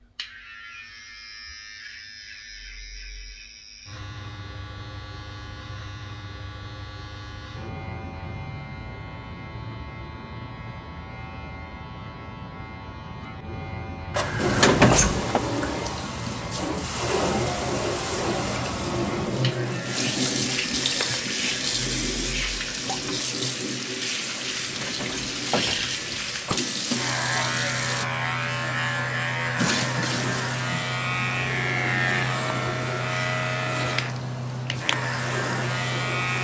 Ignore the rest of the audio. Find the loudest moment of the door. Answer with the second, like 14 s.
15 s.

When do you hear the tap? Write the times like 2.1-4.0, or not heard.
14.3-28.1, 29.6-36.3.